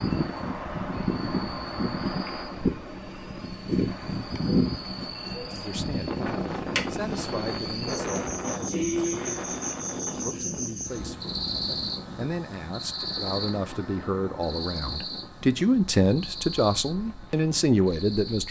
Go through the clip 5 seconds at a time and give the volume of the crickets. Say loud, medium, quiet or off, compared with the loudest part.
medium, loud, loud, medium.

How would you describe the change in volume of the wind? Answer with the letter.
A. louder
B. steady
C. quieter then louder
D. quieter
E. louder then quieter
D.